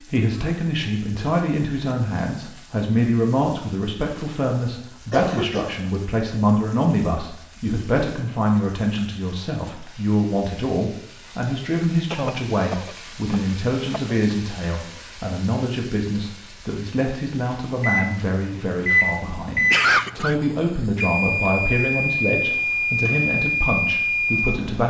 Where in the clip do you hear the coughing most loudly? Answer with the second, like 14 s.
20 s.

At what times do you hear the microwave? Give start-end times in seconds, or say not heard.
17.8-24.8.